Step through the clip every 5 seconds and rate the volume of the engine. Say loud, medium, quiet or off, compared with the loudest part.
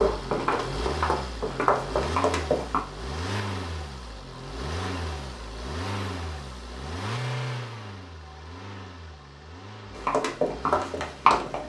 loud, loud, medium.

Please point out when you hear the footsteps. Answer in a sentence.
You can hear the footsteps from 0.0 to 2.8 s and from 9.9 to 11.6 s.